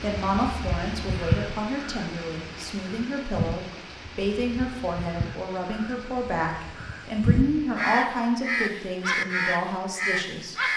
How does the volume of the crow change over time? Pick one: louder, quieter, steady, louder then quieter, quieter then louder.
quieter then louder.